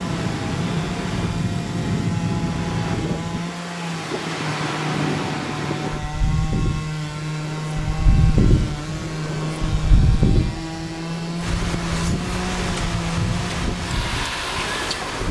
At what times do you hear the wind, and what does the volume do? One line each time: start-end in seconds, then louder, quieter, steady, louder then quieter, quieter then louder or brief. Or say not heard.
0.0-15.2 steady.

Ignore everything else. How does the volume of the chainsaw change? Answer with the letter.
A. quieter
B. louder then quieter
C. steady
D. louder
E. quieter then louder
C.